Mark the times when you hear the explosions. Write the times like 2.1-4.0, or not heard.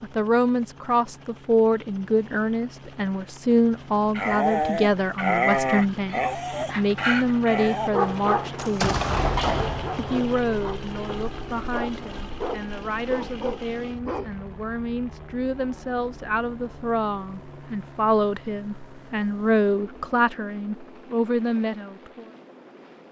8.6-10.2.